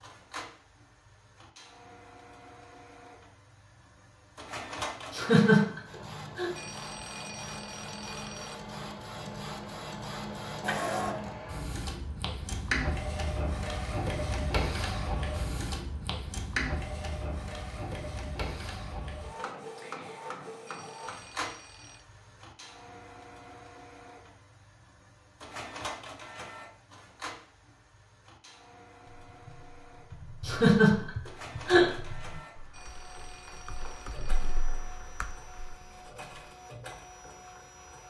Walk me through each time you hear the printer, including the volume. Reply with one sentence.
You can hear the printer from 0.0 to 38.0 s, getting louder then quieter.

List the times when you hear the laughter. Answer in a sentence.
The laughter can be heard from 5.1 to 6.5 s and from 30.4 to 31.9 s.